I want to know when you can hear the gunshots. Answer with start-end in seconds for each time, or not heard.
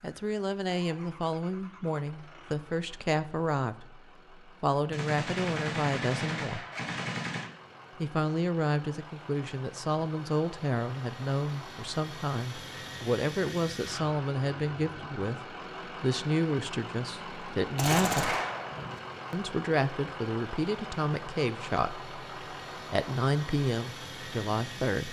4.9-7.5, 17.8-19.0.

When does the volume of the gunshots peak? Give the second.
18 s.